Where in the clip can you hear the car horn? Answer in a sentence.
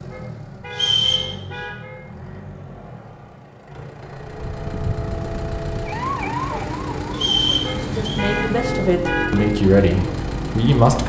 You can hear the car horn from 0.1 to 2.0 s and from 7.6 to 9.5 s.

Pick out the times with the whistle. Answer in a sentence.
The whistle can be heard from 0.7 to 1.6 s and from 7.1 to 8.2 s.